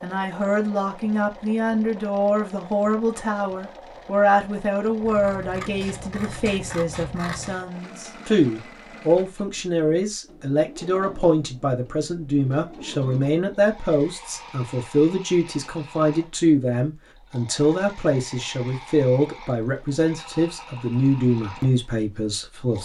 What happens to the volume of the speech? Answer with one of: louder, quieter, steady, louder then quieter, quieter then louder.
steady.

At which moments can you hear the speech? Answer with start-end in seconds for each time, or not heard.
0.0-22.7.